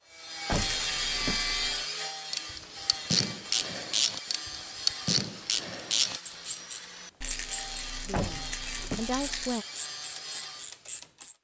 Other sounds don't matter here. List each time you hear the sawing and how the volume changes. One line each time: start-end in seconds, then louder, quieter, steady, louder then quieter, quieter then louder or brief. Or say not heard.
0.1-10.9 quieter.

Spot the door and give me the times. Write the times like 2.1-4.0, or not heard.
0.5-1.5, 8.1-9.2.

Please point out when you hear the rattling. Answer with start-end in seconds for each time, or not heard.
0.5-1.9, 7.2-9.6.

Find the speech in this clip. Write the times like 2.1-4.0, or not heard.
8.1-9.7.